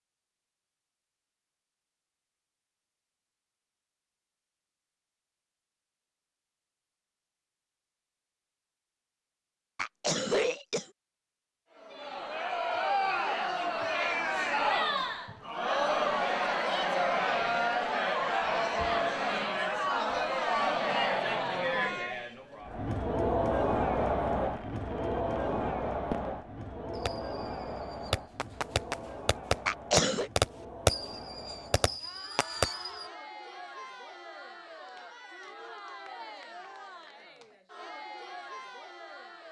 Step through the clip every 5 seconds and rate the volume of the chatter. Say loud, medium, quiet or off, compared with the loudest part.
off, off, loud, loud, loud, medium, quiet, quiet.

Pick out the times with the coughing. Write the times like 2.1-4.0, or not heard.
9.8-10.9, 29.6-30.3.